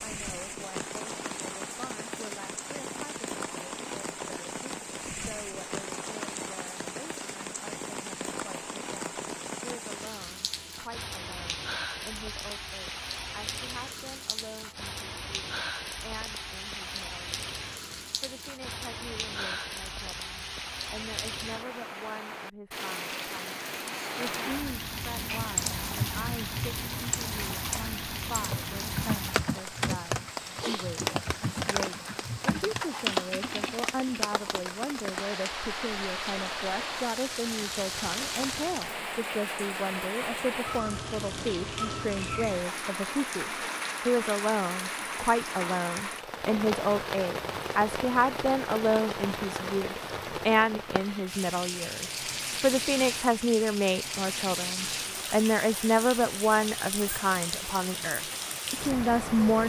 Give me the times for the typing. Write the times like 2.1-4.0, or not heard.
25.1-34.2.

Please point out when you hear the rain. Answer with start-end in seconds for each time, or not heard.
0.0-59.6.